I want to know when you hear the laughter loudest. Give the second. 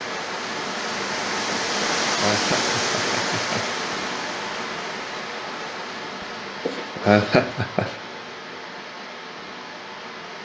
7 s.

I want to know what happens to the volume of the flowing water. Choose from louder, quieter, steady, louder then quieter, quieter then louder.
quieter.